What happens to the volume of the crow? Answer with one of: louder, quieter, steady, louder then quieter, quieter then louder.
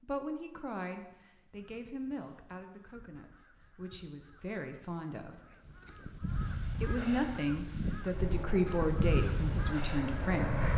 louder.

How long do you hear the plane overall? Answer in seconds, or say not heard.
3 s.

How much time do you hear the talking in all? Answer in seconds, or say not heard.
9 s.